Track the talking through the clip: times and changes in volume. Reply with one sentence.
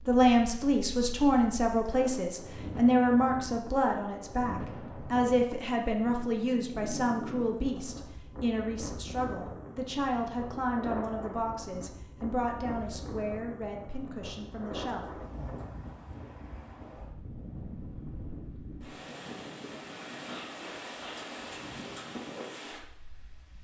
The talking can be heard from 0.1 to 15.1 s, getting quieter.